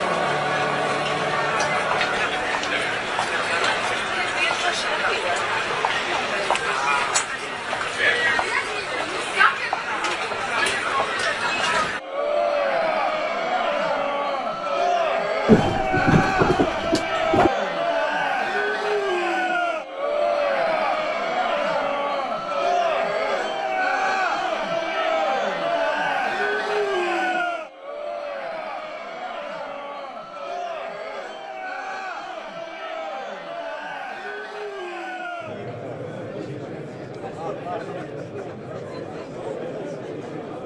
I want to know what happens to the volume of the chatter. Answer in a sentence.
The loudness of the chatter goes down.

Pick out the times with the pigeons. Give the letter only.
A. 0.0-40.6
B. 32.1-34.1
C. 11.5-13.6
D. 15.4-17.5
D.